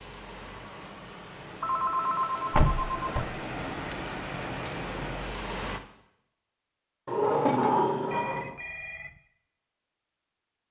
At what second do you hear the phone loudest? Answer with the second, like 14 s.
2 s.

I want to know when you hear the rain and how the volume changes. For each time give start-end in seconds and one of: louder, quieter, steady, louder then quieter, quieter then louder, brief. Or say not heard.
0.0-5.8 louder.